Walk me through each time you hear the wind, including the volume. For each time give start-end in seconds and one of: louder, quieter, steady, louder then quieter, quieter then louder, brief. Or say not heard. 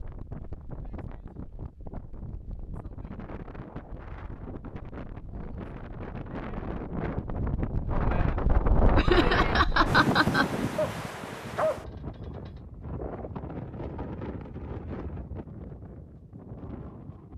0.0-17.3 louder then quieter.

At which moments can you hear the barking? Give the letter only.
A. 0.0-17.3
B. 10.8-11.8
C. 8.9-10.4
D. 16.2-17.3
B.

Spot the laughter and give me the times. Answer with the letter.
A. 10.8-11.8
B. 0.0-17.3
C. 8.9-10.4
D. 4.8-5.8
C.